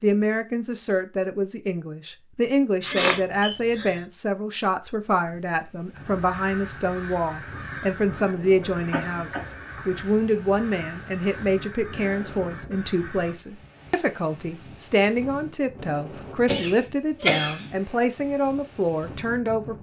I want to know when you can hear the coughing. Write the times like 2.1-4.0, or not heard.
2.8-4.0, 8.7-10.1, 16.4-17.8.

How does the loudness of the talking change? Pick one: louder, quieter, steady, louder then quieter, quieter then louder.
steady.